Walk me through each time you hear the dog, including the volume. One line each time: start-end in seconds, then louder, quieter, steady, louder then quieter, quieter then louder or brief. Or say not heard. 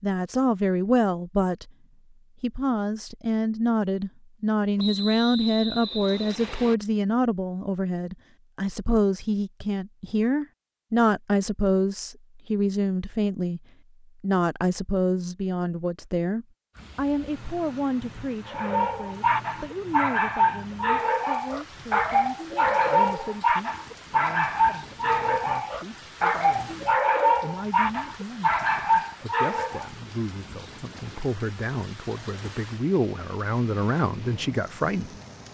18.4-29.9 steady.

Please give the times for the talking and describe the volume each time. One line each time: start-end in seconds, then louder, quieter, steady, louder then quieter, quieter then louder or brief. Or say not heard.
0.0-1.7 brief
2.4-13.6 steady
14.2-35.1 quieter then louder.